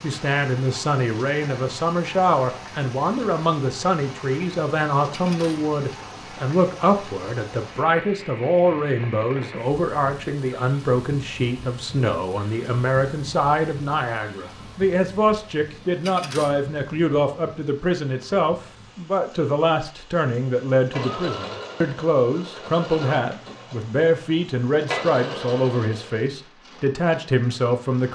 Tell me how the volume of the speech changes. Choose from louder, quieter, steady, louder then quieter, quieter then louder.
steady.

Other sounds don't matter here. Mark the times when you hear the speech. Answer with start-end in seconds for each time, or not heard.
0.0-28.1.